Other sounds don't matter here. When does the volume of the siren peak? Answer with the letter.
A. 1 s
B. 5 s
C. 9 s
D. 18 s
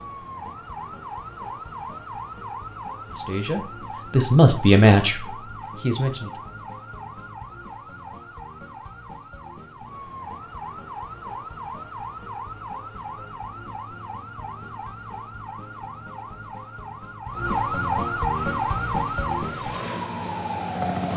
D.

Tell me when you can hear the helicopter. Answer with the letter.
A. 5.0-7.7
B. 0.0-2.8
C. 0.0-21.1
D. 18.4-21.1
D.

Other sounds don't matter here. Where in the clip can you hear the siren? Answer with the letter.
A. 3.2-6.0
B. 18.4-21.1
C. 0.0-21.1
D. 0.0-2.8
C.